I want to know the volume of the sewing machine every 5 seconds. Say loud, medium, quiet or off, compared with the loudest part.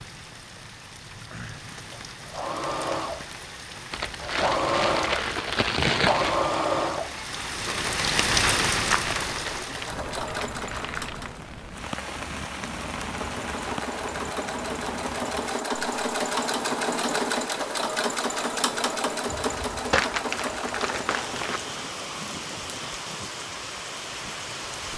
loud, loud, medium, loud, medium.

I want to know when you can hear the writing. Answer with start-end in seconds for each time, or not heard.
not heard.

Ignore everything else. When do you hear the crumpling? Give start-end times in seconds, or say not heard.
3.9-6.5, 8.8-11.3, 19.9-21.6.